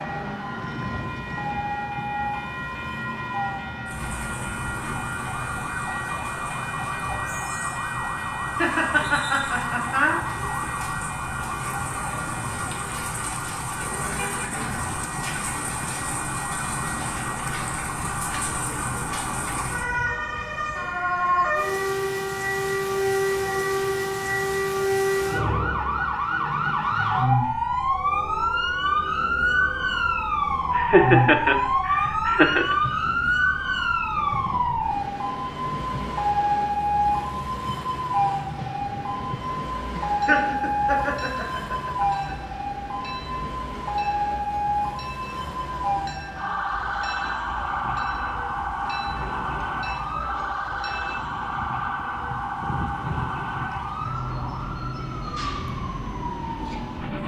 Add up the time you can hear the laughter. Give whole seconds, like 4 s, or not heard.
6 s.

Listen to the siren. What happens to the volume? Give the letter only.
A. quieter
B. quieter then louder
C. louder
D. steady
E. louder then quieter
E.